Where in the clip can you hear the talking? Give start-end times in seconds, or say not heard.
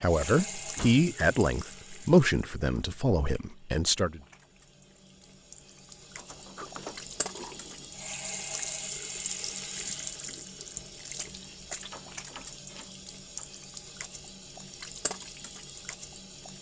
0.0-4.2.